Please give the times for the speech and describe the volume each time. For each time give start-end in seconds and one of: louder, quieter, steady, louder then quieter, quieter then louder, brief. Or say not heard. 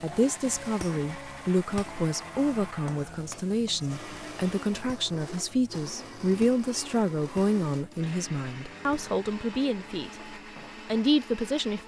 0.0-11.8 steady.